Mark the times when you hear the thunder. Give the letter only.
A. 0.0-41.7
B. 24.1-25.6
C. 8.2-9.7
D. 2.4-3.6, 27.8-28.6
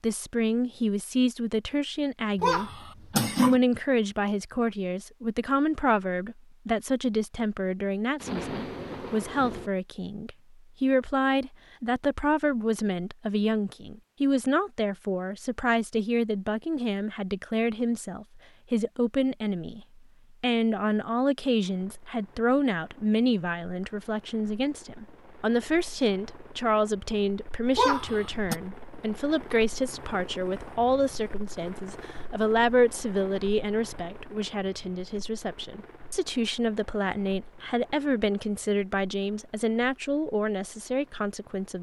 C.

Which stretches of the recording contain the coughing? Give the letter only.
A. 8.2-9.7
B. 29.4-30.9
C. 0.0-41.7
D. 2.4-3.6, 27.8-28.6
D.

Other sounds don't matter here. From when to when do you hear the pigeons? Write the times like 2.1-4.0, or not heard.
not heard.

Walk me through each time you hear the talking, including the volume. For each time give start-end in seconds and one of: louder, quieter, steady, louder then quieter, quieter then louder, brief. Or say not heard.
0.0-41.7 steady.